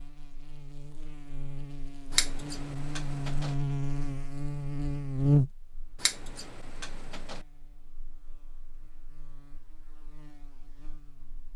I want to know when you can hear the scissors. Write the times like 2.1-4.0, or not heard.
2.1-3.5, 6.0-7.4.